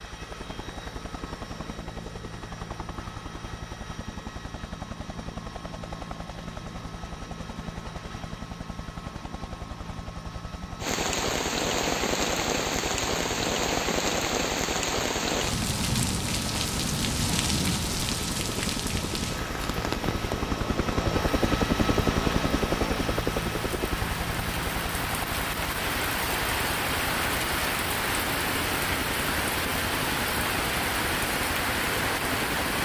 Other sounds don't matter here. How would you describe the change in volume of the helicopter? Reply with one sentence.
The volume of the helicopter goes up, then down.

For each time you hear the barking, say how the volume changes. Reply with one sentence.
You can't hear the barking here.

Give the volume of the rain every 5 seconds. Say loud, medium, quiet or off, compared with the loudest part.
off, off, loud, loud, medium, loud, loud.